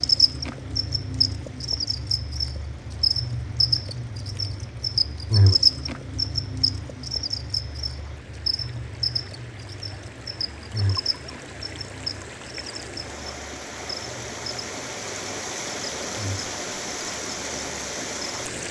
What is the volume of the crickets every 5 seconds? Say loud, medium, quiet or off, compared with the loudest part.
loud, loud, medium, quiet.